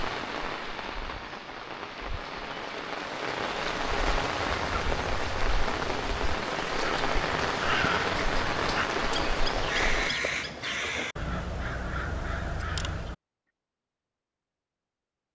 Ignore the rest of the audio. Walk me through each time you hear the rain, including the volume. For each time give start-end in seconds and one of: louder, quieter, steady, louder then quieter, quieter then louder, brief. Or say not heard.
0.0-10.2 louder.